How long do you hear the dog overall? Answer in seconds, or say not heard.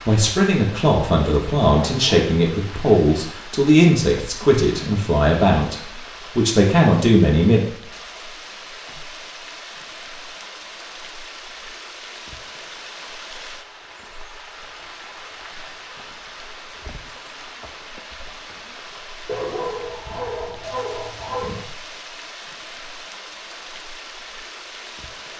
3 s.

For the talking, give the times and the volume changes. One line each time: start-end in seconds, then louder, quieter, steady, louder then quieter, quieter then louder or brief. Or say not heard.
0.1-7.6 steady.